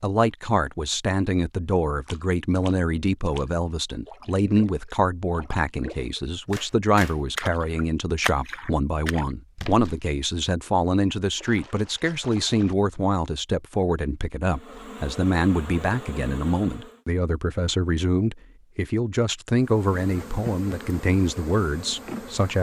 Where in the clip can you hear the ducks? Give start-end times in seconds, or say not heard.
not heard.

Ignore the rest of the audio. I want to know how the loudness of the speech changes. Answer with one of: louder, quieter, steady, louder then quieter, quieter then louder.
steady.